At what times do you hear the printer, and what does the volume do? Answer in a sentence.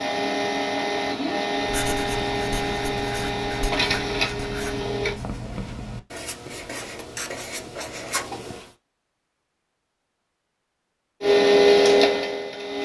You can hear the printer from 0.0 to 5.2 s, at a steady volume; and briefly from 11.2 to 12.8 s.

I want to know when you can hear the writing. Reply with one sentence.
The writing can be heard from 1.6 to 8.8 s.